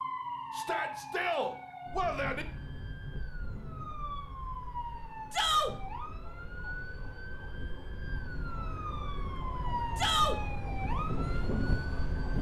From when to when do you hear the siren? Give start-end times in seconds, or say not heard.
0.0-12.3.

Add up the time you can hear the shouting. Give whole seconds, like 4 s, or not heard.
3 s.